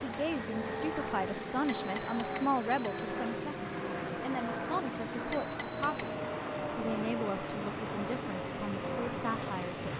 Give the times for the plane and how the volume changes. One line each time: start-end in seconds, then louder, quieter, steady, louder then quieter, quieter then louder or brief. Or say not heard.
0.0-9.9 steady.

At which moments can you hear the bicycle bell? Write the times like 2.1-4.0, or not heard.
1.6-3.1, 5.2-6.0.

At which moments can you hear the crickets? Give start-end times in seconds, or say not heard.
not heard.